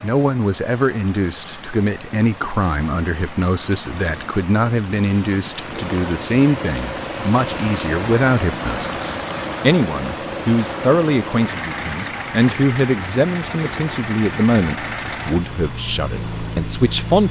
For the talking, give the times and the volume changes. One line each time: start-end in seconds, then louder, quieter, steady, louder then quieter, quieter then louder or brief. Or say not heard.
0.0-17.2 steady.